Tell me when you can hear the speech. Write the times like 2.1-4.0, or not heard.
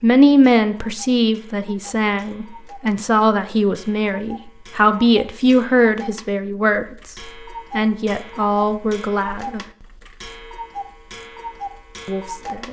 0.0-9.6, 12.1-12.6.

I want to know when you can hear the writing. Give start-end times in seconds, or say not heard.
not heard.